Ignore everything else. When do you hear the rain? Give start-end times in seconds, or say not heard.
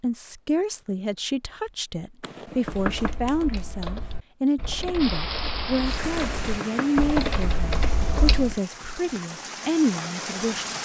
5.0-10.8.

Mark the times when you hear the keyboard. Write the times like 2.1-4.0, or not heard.
2.6-8.6.